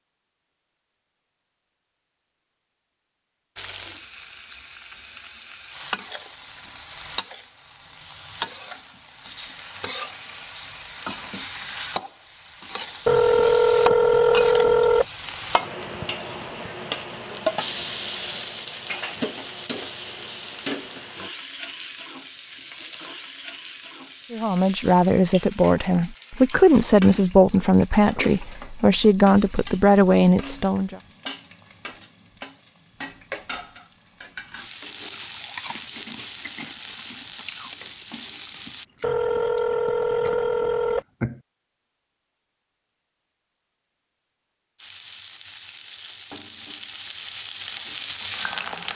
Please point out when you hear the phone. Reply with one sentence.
You can hear the phone from 13.1 to 15.1 s and from 39.0 to 41.0 s.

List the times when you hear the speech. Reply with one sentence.
You can hear the speech from 24.3 to 31.0 s.